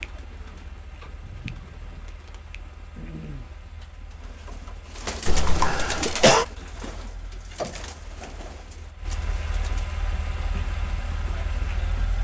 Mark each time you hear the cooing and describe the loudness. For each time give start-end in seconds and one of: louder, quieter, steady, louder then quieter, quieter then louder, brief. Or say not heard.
0.0-9.9 louder then quieter.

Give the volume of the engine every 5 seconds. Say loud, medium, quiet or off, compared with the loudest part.
quiet, medium, loud.